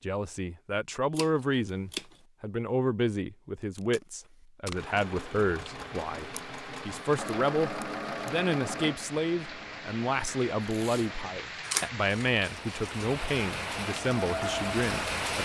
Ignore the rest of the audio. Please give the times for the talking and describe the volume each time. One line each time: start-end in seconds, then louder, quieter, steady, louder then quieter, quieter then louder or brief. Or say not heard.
0.0-15.3 steady.